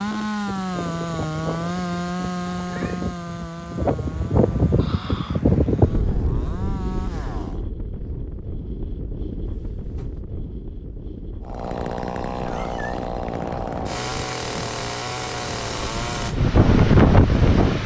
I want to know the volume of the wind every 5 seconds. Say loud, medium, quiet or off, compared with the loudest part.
medium, medium, quiet, loud.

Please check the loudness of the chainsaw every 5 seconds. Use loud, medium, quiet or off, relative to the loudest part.
loud, medium, loud, loud.